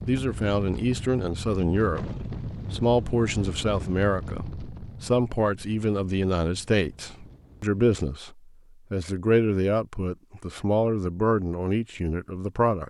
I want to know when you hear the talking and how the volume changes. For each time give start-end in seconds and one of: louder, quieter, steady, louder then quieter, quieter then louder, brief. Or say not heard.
0.1-12.8 steady.